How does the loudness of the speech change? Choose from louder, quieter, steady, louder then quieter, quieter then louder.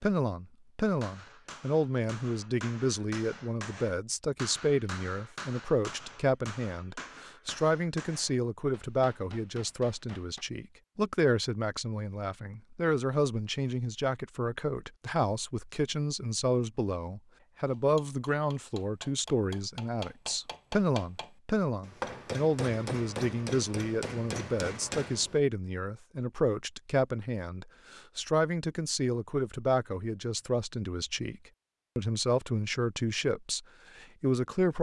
steady.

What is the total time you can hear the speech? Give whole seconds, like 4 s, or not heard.
35 s.